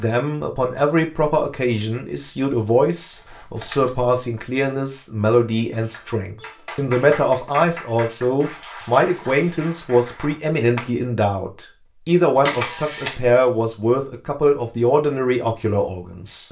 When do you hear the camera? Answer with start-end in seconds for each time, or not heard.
3.1-4.0, 12.4-13.2.